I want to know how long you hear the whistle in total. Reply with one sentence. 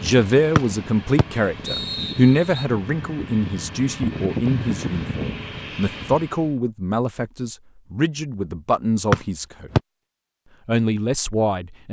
The whistle can be heard for 3 seconds in total.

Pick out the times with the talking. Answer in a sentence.
You can hear the talking from 0.0 to 9.7 s and from 10.7 to 11.8 s.